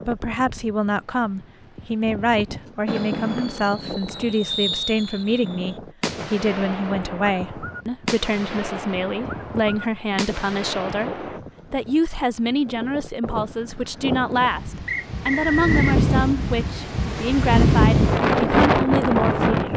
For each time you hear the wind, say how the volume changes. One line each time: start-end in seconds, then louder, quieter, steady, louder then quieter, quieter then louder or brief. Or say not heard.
0.0-19.7 louder.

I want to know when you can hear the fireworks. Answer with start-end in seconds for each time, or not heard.
2.9-11.4.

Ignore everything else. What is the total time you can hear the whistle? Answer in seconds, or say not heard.
2 s.